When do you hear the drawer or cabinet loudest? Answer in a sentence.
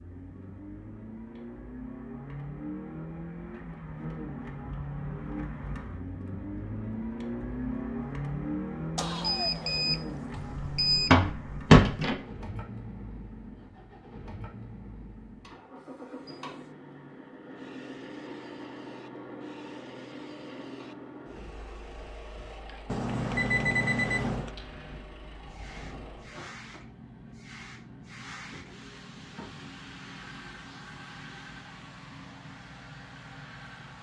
The loudest moment of the drawer or cabinet is at 12 seconds.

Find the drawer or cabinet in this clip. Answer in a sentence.
You can hear the drawer or cabinet from 10.3 to 12.2 s.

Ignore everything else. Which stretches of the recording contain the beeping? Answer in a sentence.
You can hear the beeping from 8.9 to 11.1 s and from 22.9 to 24.5 s.